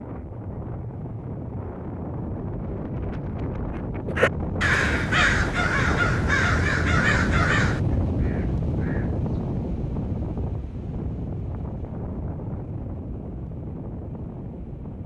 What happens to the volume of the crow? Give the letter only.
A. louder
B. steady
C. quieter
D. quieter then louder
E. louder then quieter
C.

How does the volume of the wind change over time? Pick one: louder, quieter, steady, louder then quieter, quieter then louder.
louder then quieter.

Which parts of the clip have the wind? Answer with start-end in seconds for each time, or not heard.
0.0-15.0.